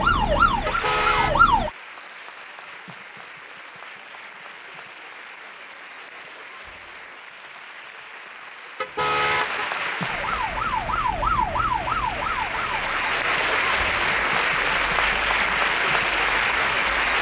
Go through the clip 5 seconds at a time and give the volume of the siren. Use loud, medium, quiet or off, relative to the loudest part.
loud, off, medium, quiet.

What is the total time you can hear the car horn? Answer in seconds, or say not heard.
2 s.